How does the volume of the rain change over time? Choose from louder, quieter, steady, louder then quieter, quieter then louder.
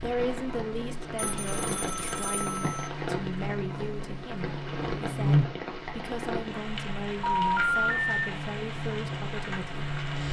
steady.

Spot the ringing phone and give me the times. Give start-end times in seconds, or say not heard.
1.1-2.9, 7.2-8.2.